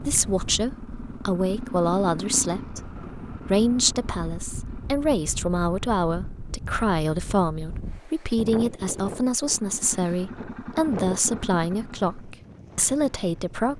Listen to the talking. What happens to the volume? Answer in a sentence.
The volume of the talking stays about the same.